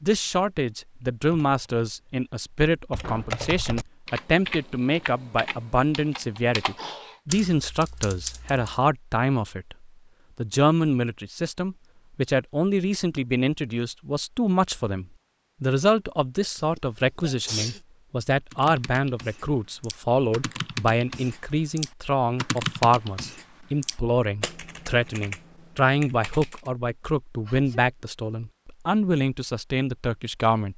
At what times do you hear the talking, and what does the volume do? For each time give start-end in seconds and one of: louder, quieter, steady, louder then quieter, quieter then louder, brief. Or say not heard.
0.0-30.7 steady.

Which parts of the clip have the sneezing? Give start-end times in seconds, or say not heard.
6.8-7.2, 16.5-17.8, 27.4-27.9.